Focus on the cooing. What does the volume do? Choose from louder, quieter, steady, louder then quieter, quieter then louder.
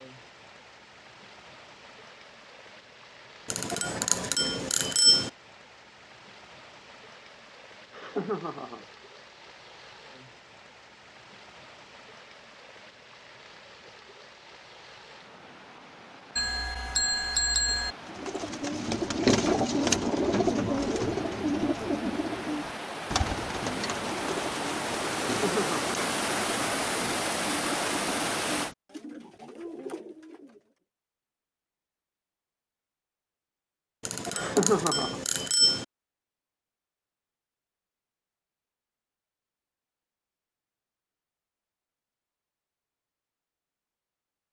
quieter.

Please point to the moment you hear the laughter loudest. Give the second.
35 s.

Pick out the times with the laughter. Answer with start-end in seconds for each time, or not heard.
7.9-8.8, 25.2-25.9, 34.3-35.2.